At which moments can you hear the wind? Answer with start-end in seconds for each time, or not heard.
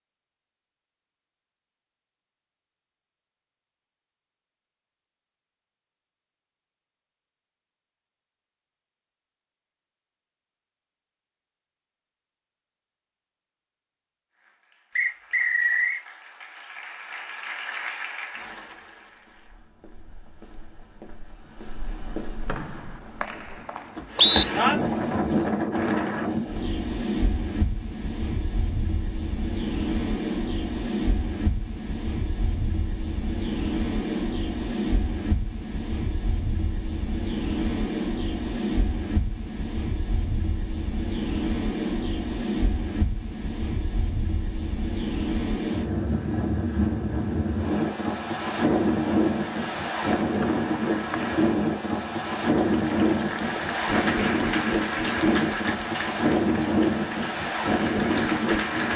24.1-58.9.